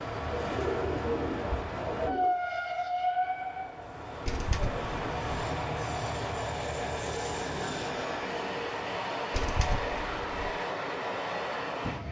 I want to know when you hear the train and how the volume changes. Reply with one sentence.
You can hear the train from 0.0 to 12.0 s, at a steady volume.